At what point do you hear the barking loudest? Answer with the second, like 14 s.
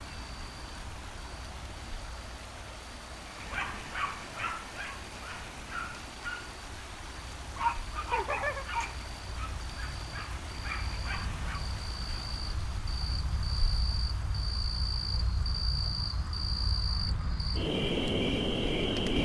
8 s.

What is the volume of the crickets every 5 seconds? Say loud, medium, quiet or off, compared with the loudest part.
quiet, quiet, medium, loud.